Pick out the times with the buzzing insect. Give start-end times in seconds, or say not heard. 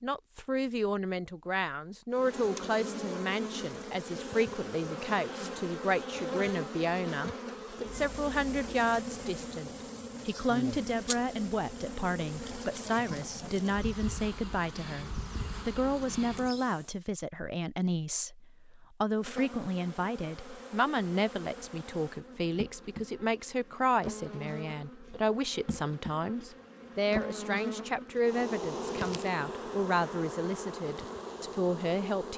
2.1-17.0, 19.1-32.3.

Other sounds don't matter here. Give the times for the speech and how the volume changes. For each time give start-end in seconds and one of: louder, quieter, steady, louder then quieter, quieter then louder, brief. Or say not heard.
0.0-32.3 steady.